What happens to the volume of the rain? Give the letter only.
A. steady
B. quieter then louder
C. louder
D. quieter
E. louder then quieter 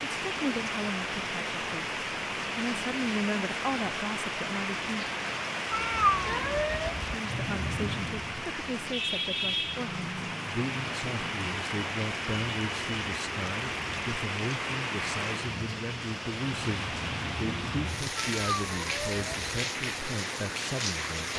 A.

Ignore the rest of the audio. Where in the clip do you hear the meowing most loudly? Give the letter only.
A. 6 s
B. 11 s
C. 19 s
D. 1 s
A.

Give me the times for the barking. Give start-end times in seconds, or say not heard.
not heard.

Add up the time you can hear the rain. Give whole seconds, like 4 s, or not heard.
21 s.